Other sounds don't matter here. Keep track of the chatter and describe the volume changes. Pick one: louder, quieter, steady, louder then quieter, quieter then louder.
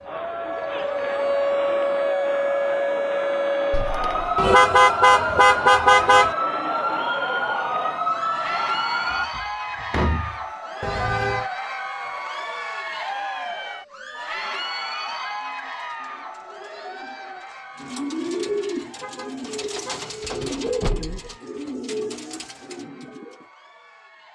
quieter.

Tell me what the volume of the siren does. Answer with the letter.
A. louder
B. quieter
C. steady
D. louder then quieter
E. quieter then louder
C.